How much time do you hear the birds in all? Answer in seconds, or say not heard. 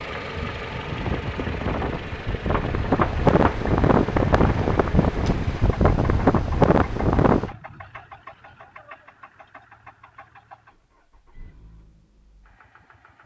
not heard.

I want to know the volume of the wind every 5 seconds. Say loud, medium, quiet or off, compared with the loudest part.
loud, loud, off.